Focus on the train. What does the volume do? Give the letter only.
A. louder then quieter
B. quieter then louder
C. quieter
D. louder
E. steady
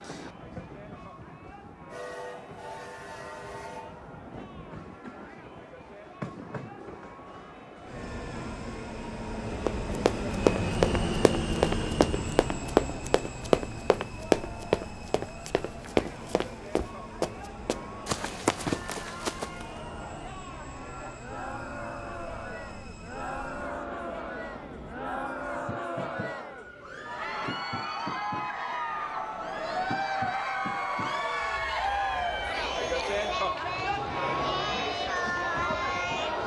A.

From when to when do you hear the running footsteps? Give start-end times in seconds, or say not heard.
9.7-19.6.